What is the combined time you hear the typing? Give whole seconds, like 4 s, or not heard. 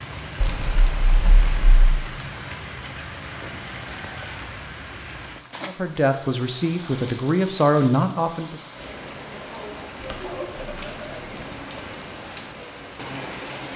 3 s.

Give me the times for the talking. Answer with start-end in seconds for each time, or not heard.
5.7-8.7.